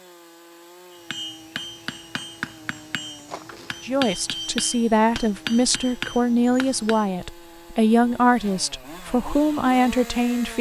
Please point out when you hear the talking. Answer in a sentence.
The talking can be heard from 3.8 to 10.5 s.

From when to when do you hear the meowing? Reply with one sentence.
You can't hear the meowing here.